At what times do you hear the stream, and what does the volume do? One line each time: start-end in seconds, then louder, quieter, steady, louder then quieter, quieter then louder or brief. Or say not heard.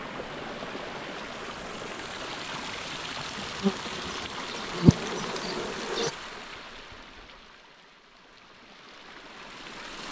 0.0-10.0 quieter.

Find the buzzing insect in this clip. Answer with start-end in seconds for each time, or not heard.
3.4-6.1.